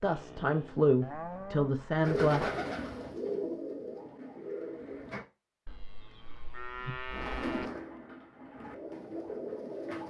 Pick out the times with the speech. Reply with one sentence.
The speech can be heard from 0.0 to 2.5 s.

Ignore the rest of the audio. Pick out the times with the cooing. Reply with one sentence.
You can hear the cooing from 2.0 to 5.2 s and from 7.1 to 10.0 s.